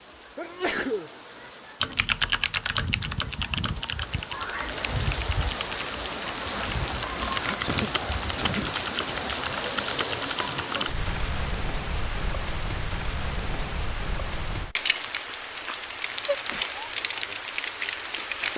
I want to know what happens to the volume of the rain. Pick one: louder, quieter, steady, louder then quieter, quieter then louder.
louder.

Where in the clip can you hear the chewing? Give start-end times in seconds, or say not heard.
not heard.